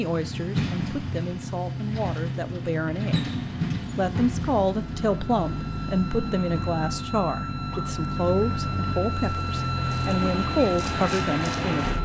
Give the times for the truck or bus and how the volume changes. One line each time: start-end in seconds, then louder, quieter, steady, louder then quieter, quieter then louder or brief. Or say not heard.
0.0-12.0 steady.